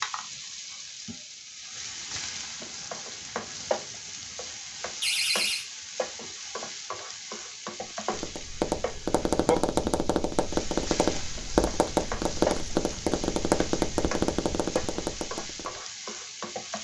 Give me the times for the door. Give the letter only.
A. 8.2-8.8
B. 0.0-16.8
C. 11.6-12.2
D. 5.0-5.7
D.